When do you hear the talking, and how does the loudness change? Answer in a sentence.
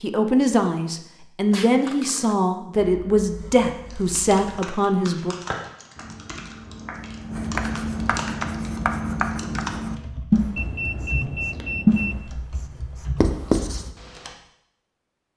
You can hear the talking from 0.0 to 5.3 s, at a steady volume.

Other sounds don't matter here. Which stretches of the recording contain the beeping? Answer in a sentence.
The beeping can be heard from 1.5 to 2.4 s and from 10.6 to 12.2 s.